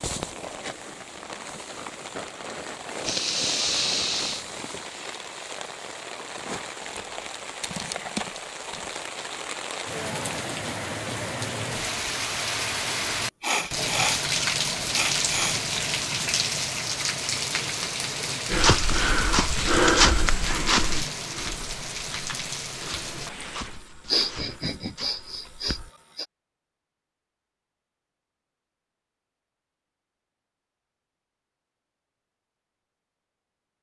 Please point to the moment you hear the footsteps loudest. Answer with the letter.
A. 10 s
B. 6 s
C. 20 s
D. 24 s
C.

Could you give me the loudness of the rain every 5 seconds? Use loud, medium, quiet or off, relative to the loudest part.
medium, medium, loud, loud, medium, off, off.